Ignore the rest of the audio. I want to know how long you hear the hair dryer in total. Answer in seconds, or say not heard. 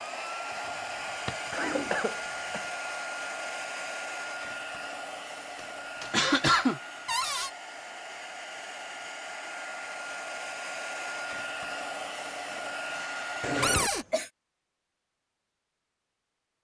14 s.